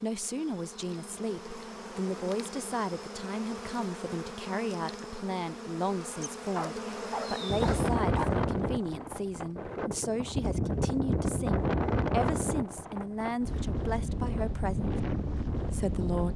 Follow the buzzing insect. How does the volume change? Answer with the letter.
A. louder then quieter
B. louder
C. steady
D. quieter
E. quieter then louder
B.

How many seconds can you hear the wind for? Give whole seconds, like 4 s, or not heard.
9 s.